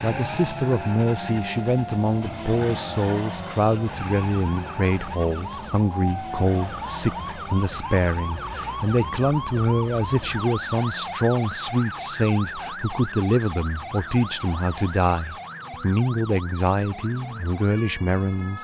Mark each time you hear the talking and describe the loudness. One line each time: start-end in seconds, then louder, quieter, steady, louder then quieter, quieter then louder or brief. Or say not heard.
0.0-18.5 steady.